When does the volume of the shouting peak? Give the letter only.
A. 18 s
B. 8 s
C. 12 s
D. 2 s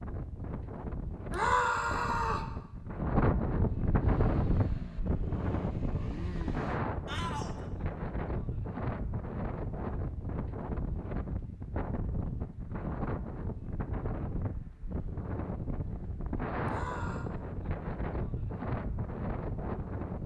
D.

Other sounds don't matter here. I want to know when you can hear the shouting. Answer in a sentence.
You can hear the shouting from 1.3 to 2.5 s, from 7.0 to 7.5 s and from 16.6 to 17.3 s.